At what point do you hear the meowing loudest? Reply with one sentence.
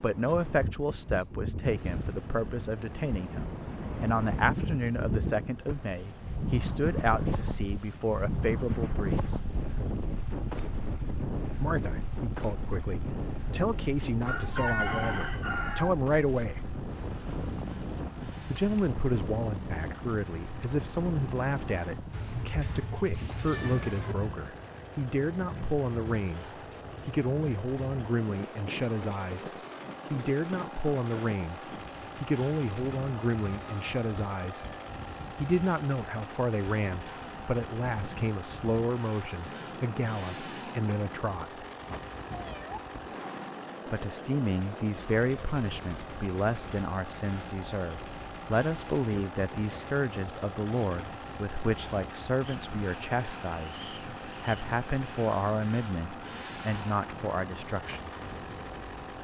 The volume of the meowing peaks at 15 seconds.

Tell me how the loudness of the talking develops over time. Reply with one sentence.
The loudness of the talking stays about the same.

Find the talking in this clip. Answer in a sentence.
The talking can be heard from 0.0 to 9.4 s, from 11.5 to 16.6 s, from 18.5 to 29.5 s, from 30.1 to 34.6 s, from 35.4 to 41.6 s and from 43.9 to 58.1 s.